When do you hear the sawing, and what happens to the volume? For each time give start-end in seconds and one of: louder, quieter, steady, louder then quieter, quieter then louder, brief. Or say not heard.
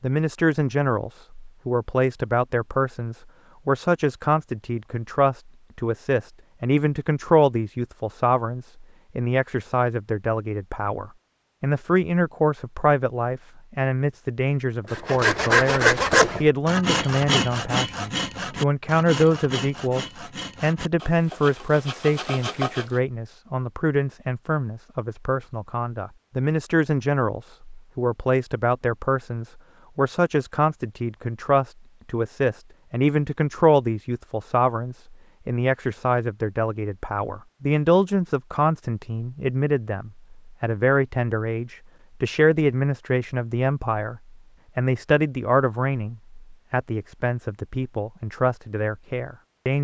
14.9-23.0 quieter.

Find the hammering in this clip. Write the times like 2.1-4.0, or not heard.
not heard.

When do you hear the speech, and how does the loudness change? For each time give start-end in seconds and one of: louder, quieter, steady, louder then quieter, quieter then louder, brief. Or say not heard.
0.0-49.8 steady.